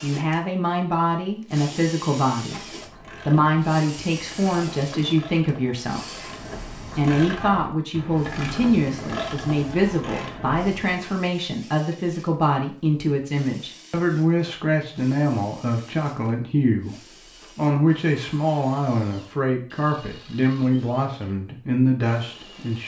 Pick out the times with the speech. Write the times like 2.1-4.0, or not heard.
0.0-22.8.